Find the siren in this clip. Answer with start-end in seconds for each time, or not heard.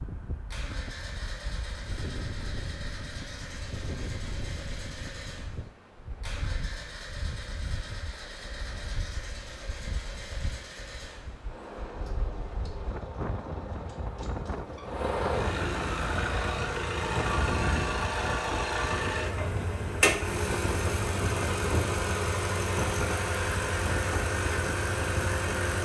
not heard.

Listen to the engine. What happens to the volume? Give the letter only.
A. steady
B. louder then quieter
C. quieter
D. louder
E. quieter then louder
D.